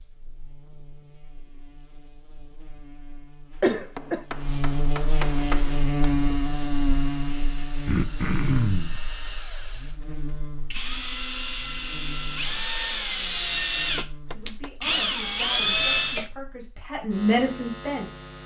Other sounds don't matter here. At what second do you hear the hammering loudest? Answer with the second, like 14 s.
5 s.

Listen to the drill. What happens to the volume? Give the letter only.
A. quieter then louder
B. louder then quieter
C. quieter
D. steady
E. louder
E.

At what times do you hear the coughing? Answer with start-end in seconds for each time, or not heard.
3.6-4.2, 7.8-9.0, 15.7-16.3.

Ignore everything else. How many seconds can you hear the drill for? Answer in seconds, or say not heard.
11 s.